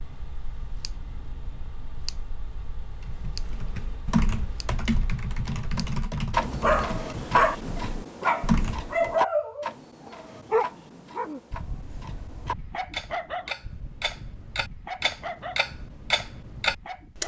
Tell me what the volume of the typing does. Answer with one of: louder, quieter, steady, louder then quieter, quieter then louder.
quieter then louder.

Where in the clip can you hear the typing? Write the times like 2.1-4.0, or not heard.
3.0-9.2.